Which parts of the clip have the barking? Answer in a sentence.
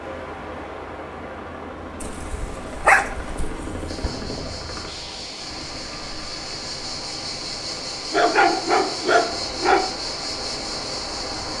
You can hear the barking from 2.0 to 3.8 s and from 8.1 to 9.9 s.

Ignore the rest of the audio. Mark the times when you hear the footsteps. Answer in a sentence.
You can't hear the footsteps here.